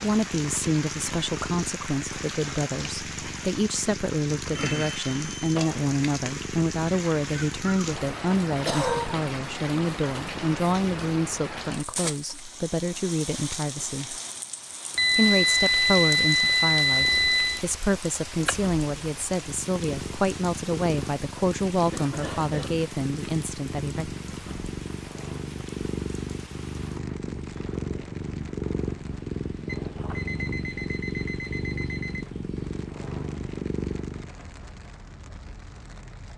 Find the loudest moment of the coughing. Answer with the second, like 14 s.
9 s.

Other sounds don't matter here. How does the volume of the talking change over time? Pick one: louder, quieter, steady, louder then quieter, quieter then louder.
steady.